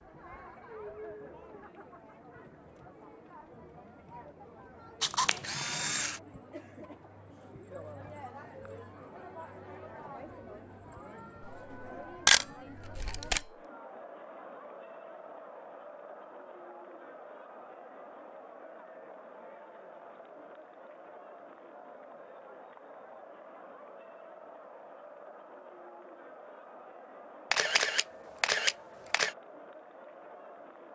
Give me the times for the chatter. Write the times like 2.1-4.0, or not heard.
0.0-30.9.